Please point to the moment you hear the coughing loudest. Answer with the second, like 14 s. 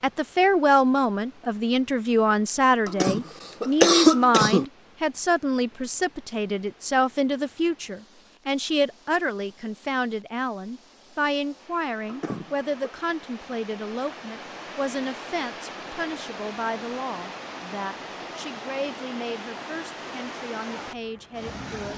4 s.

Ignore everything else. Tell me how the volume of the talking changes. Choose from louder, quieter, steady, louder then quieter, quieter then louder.
quieter.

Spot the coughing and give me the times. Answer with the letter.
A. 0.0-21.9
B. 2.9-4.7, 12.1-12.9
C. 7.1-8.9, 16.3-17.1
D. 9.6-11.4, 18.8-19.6
B.